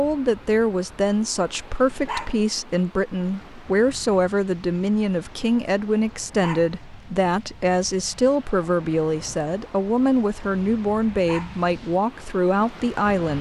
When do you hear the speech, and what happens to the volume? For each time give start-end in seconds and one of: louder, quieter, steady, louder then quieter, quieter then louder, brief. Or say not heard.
0.0-13.3 steady.